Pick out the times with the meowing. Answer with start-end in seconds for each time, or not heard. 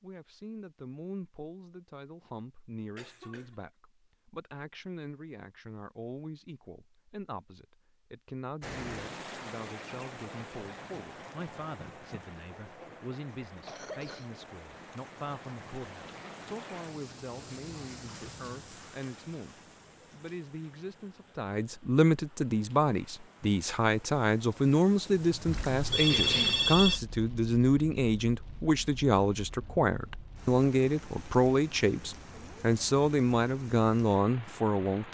not heard.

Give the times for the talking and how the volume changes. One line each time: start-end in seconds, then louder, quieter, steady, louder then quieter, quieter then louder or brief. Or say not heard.
0.0-35.0 louder.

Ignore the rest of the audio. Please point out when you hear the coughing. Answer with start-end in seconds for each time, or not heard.
3.0-3.5, 13.5-14.3, 26.1-26.6.